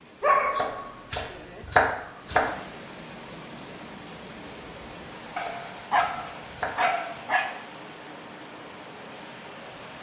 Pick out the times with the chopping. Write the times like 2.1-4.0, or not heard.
0.5-2.6, 5.3-7.2.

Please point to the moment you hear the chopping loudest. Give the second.
2 s.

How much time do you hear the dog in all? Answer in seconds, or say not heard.
4 s.